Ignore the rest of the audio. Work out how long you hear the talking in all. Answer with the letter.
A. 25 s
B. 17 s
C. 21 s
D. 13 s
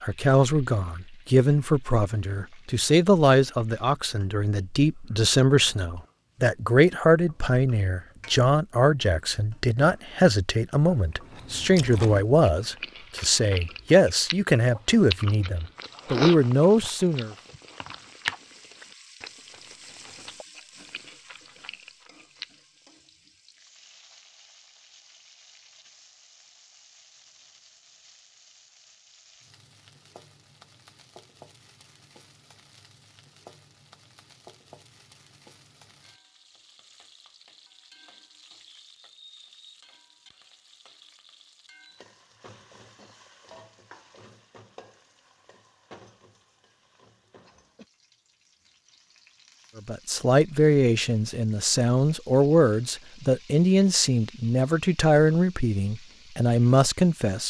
A.